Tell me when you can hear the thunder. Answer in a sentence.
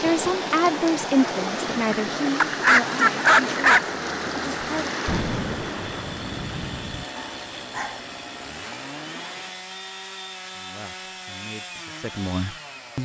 You can hear the thunder from 5.0 to 7.0 s.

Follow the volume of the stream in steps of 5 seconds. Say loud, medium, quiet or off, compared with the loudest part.
loud, medium, off.